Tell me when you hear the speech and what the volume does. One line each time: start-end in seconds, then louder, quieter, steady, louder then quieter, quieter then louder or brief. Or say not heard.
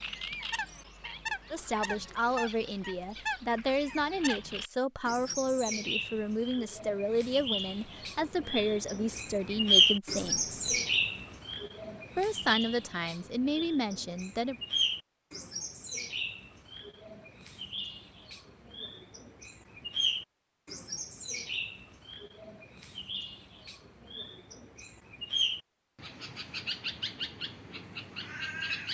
1.5-10.8 steady
12.2-14.6 brief.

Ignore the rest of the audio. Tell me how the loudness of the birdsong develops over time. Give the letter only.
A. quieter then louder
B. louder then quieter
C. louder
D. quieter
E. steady
B.